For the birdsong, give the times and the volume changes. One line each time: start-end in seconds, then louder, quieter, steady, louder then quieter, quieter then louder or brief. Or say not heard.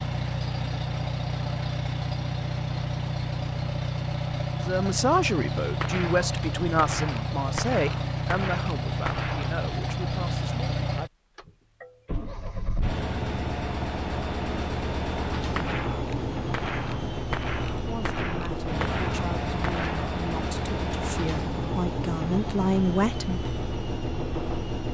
not heard.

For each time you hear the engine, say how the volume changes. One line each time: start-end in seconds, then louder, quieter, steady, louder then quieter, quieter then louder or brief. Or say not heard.
0.0-24.8 steady.